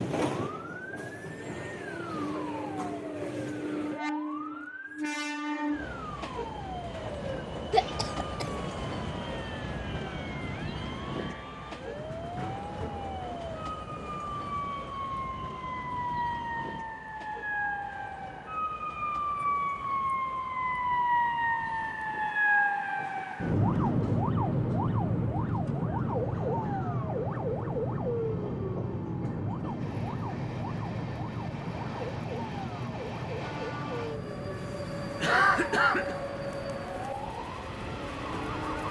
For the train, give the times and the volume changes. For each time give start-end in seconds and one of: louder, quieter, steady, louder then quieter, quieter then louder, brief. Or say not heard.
0.0-38.8 quieter then louder.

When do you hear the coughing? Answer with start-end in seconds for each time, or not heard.
7.7-8.8, 35.2-36.2.